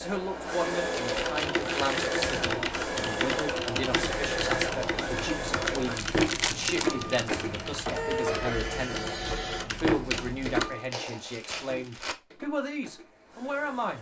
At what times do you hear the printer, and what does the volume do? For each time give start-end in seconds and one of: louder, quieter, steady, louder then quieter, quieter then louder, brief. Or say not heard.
0.0-13.9 quieter.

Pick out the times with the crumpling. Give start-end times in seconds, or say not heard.
0.8-2.2, 5.8-7.3, 10.1-12.2.